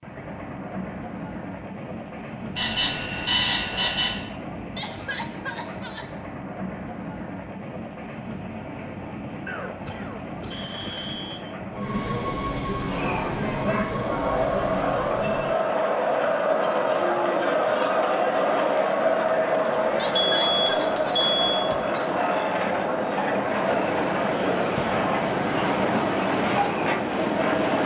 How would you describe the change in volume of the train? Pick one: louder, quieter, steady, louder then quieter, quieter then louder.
louder.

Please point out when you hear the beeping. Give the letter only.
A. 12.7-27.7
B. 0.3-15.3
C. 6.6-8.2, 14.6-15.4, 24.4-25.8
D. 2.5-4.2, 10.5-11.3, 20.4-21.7
D.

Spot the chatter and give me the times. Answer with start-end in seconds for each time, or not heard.
12.7-27.7.